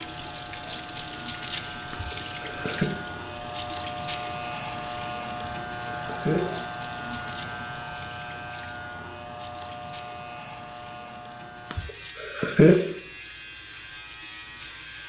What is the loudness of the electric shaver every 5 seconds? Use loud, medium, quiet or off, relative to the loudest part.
loud, loud, medium.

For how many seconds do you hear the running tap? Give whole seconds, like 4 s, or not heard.
15 s.